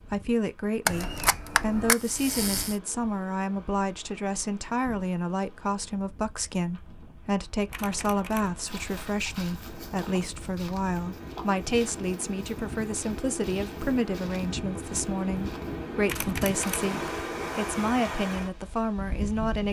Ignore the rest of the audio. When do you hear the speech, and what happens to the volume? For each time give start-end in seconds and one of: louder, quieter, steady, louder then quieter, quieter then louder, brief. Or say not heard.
0.1-19.6 steady.